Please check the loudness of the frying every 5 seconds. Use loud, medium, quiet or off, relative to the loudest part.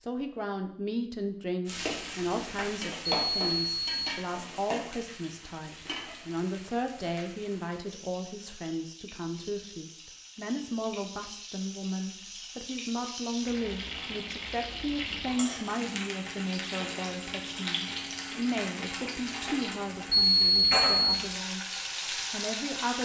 loud, quiet, medium, loud, loud.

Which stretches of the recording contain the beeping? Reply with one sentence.
The beeping can be heard from 3.1 to 4.2 s and from 20.1 to 21.2 s.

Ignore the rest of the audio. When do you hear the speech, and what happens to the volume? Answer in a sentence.
The speech can be heard from 0.0 to 21.6 s, at a steady volume; and briefly from 22.3 to 22.9 s.